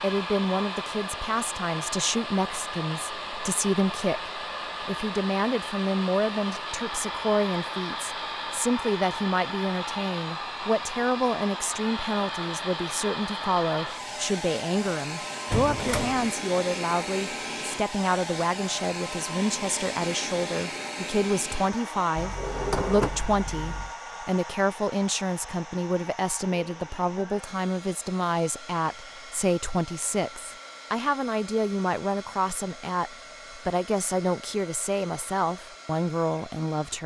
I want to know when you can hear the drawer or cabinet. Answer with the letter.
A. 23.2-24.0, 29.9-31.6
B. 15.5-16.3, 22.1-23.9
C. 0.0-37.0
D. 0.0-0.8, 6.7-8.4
B.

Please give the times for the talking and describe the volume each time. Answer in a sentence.
The talking can be heard from 0.0 to 37.0 s, at a steady volume.